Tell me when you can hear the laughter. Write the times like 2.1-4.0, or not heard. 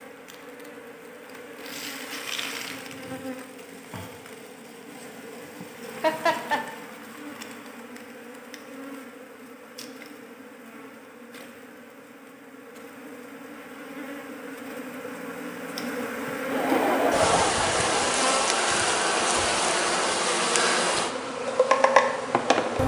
5.6-6.6, 16.5-18.2.